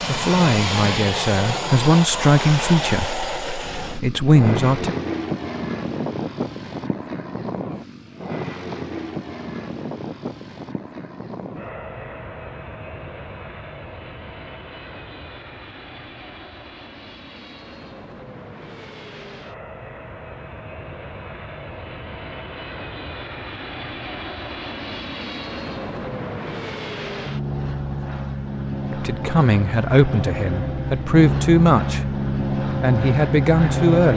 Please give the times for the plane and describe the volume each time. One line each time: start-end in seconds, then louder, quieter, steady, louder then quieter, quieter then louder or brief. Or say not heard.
0.0-34.1 quieter then louder.